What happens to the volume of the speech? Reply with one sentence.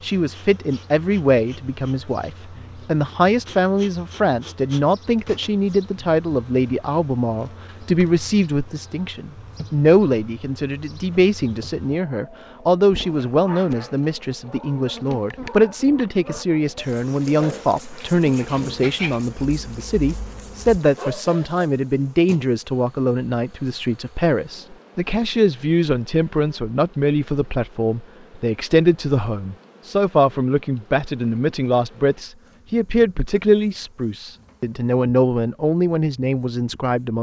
The loudness of the speech stays about the same.